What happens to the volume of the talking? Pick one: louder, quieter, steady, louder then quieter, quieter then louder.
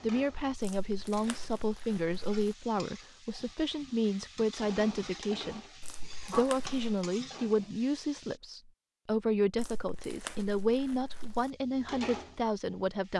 steady.